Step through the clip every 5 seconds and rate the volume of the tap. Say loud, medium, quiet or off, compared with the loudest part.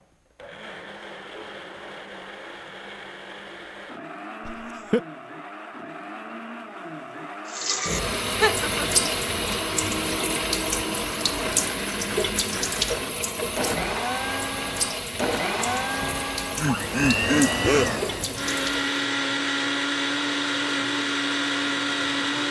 off, loud, loud, medium, off.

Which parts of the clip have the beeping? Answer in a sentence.
You can't hear the beeping here.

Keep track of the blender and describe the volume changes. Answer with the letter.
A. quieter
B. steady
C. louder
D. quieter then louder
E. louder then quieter
C.